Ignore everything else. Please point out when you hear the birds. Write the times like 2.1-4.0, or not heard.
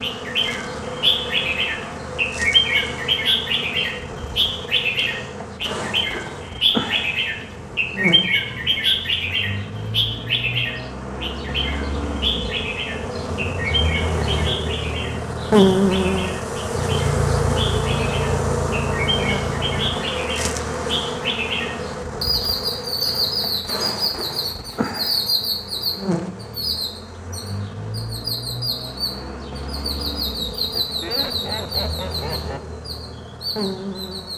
0.0-34.3.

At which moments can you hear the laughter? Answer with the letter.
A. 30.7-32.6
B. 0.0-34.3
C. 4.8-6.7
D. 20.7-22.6
A.